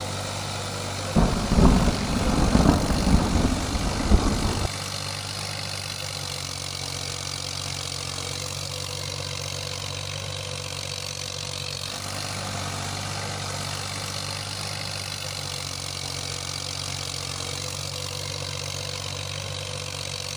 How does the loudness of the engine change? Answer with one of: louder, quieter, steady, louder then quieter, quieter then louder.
steady.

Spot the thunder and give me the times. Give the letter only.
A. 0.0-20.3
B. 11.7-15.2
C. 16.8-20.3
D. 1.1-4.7
D.